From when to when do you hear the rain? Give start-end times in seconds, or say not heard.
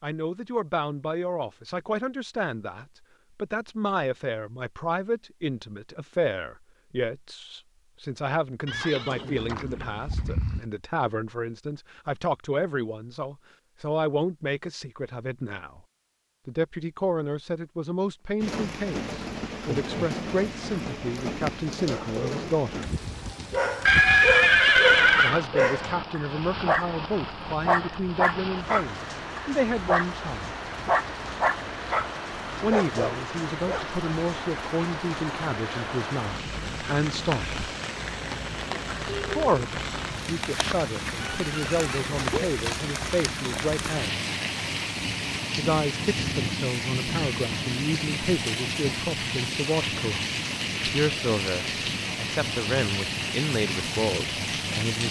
18.4-55.0.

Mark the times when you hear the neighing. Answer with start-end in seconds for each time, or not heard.
8.7-10.7, 23.9-25.4, 41.2-42.5.